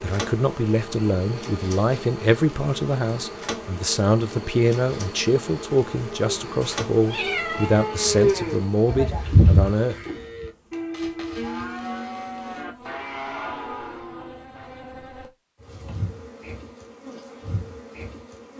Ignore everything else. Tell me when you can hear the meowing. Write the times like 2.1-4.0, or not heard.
6.6-7.8.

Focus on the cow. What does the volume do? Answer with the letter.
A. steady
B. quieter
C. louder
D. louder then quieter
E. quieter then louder
B.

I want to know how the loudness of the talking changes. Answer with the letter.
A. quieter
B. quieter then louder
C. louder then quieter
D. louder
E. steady
E.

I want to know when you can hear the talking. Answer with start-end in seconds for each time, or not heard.
0.0-9.9.